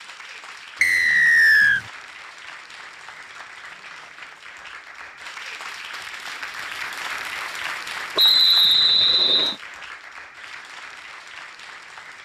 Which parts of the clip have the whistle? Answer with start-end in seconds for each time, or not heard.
0.8-1.9, 8.2-9.6.